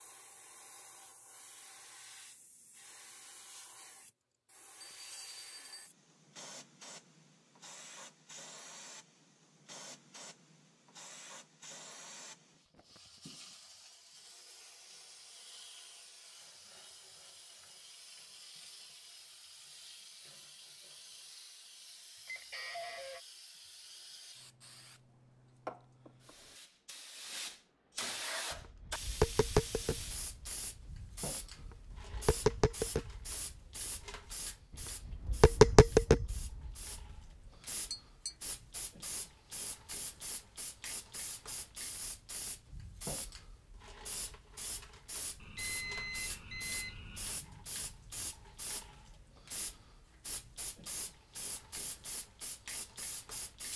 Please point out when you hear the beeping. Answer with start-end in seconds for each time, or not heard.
4.8-5.9, 22.2-23.2, 45.4-47.4.